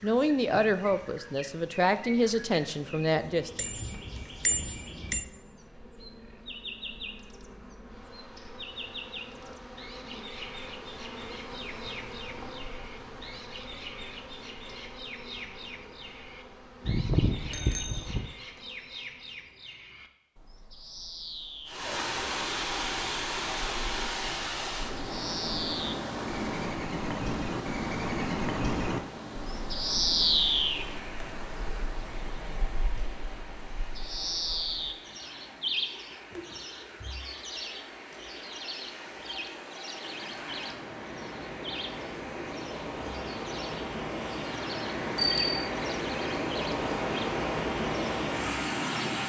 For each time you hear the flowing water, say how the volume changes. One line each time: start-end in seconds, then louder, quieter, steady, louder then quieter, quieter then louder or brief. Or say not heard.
21.6-49.2 quieter then louder.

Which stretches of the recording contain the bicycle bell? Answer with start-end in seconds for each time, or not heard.
3.5-5.2, 16.9-18.3, 45.1-45.7.